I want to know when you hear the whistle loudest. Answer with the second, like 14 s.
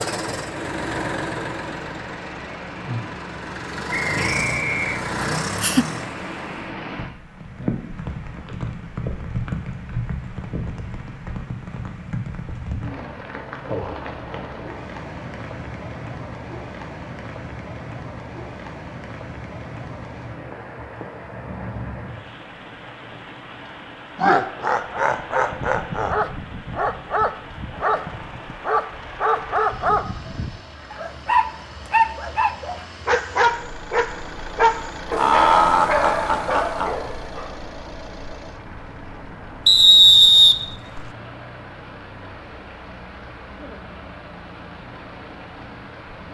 40 s.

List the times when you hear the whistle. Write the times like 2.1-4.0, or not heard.
3.9-5.5, 39.6-41.0.